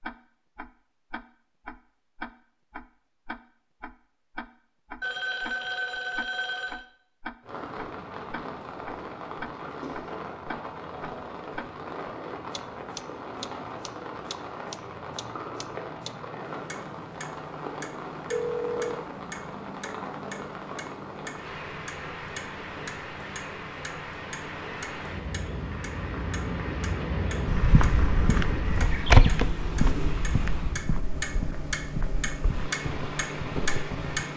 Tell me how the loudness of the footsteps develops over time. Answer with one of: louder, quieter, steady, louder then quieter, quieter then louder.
louder then quieter.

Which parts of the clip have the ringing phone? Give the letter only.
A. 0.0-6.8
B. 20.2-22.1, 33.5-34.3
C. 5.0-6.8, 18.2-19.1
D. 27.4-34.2
C.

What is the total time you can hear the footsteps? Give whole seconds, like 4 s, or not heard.
7 s.